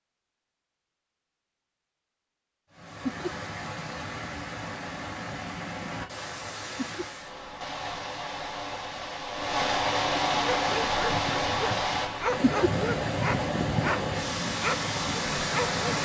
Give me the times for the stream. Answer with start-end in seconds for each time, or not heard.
2.7-16.0.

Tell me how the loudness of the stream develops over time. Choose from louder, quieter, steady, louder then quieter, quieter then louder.
louder.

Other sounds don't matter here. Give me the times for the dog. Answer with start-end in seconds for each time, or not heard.
10.5-16.0.